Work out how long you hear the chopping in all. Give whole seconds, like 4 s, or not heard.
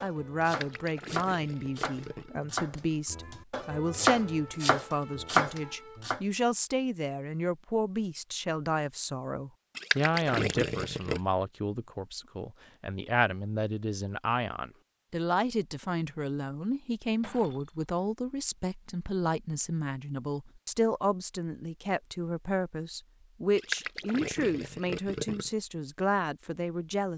6 s.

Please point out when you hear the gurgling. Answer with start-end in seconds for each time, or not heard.
0.5-2.3, 9.8-11.2, 23.6-25.5.